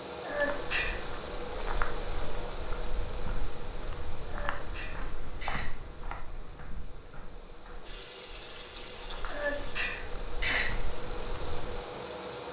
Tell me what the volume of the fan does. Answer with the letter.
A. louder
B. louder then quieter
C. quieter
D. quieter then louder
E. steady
D.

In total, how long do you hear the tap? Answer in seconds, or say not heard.
2 s.